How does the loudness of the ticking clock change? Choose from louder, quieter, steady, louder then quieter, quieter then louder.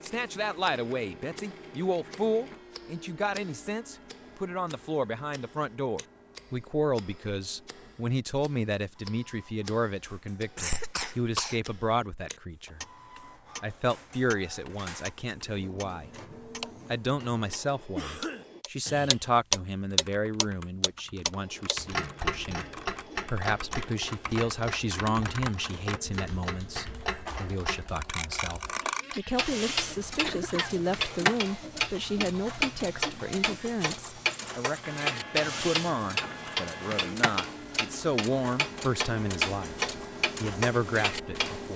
louder.